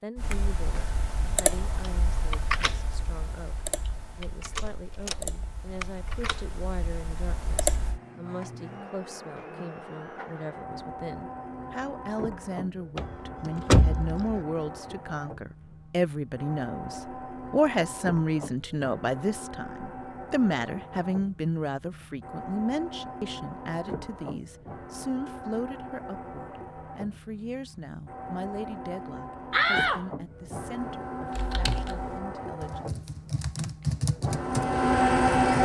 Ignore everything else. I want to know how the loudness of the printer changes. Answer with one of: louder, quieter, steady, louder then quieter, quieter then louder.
louder.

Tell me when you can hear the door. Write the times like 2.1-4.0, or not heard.
4.5-5.2, 12.9-14.4, 29.5-30.0.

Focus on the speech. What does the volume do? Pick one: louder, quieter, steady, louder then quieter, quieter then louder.
louder then quieter.